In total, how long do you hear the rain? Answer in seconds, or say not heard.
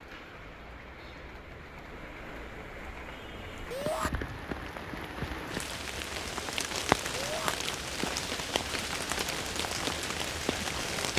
11 s.